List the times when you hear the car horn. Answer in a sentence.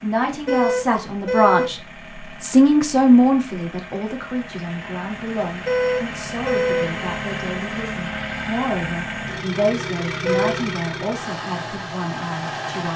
The car horn can be heard from 0.2 to 1.8 s, from 5.5 to 7.0 s and from 10.1 to 10.6 s.